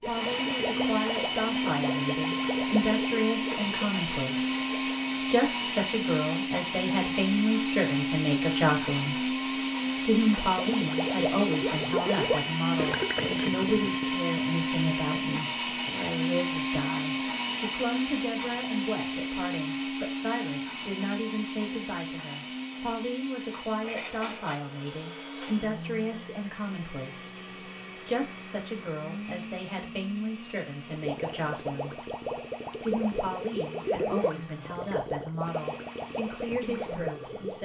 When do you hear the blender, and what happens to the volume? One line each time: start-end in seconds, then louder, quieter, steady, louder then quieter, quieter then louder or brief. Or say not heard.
0.0-37.6 quieter.